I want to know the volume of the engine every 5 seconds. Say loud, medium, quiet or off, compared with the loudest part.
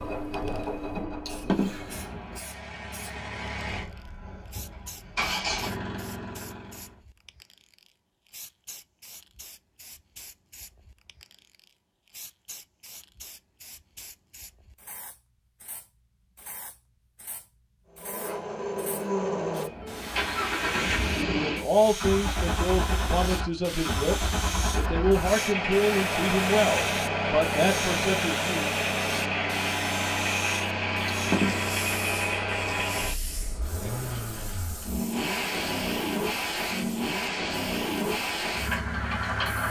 medium, medium, off, loud, loud, loud, loud, loud.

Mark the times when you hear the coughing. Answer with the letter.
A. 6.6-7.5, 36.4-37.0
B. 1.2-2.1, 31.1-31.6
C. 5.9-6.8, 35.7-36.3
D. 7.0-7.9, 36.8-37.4
B.